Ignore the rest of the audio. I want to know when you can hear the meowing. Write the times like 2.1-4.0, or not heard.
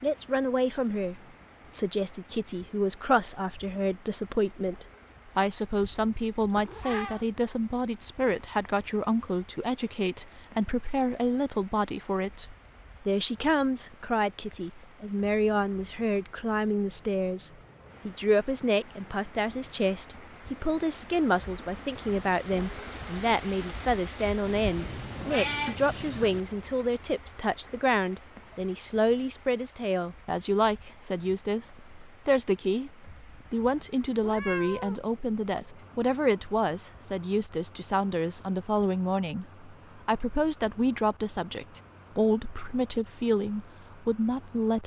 5.7-7.2, 24.4-26.4, 34.2-35.0.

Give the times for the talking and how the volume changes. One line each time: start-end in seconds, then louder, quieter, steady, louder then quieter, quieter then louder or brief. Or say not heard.
0.0-44.8 steady.